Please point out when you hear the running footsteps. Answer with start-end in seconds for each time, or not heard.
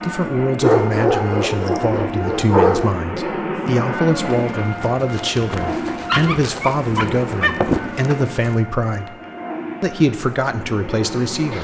4.3-8.6.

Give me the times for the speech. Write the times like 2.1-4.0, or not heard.
0.0-9.1, 9.8-11.5.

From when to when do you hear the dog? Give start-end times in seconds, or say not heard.
0.6-2.9, 6.0-7.5.